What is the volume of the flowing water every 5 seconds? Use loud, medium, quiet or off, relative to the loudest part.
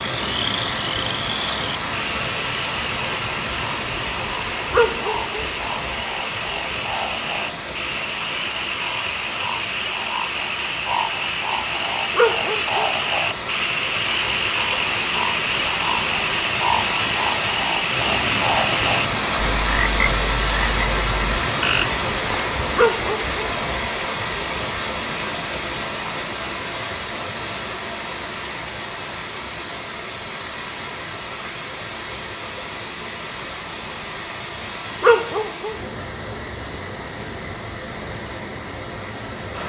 loud, medium, medium, loud, loud, medium, medium, medium.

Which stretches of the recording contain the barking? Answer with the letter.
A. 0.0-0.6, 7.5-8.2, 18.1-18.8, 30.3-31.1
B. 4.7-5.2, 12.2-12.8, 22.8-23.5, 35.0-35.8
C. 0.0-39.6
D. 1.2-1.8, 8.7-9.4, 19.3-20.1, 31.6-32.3
B.